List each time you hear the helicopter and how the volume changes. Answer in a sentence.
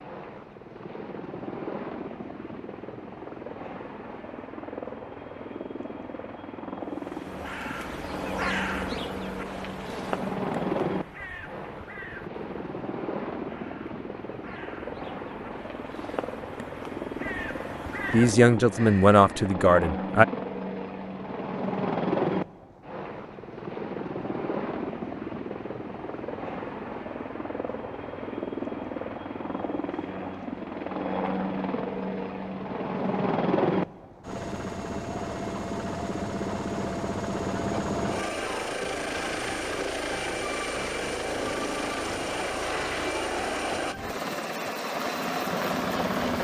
The helicopter can be heard from 0.0 to 46.3 s, getting louder.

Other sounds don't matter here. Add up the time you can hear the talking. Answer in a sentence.
You can hear the talking for 2 seconds altogether.